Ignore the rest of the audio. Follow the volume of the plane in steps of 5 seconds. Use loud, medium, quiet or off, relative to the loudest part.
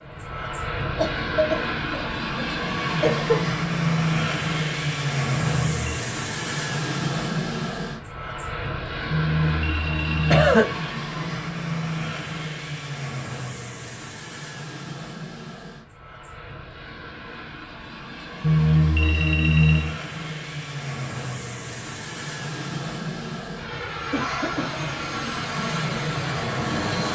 loud, loud, medium, medium, medium, loud.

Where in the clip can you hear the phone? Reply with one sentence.
You can hear the phone from 5.5 to 6.0 s, from 9.1 to 10.6 s and from 18.4 to 19.9 s.